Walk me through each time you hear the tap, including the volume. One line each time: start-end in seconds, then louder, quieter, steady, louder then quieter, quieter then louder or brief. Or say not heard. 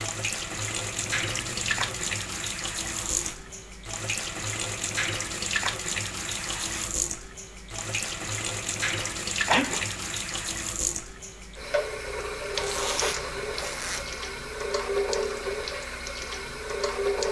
0.0-17.2 steady.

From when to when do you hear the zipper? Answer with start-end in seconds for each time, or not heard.
2.9-3.6, 6.2-7.0, 12.5-14.2.